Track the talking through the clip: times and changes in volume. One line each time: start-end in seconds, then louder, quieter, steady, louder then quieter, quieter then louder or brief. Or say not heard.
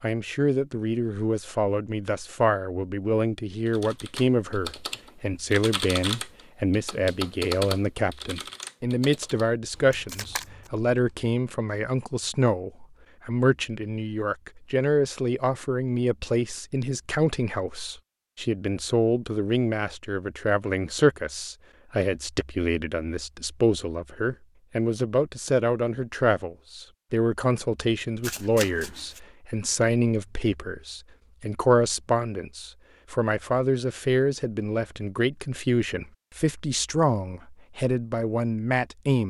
0.0-39.2 steady.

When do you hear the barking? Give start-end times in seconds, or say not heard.
not heard.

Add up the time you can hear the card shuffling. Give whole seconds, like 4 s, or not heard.
2 s.